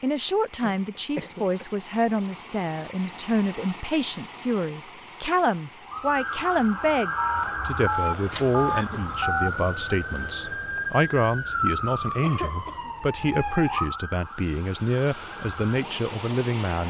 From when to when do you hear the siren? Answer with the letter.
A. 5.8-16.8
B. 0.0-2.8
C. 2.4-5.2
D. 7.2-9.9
A.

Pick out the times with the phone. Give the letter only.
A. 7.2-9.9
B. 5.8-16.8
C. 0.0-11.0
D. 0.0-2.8
A.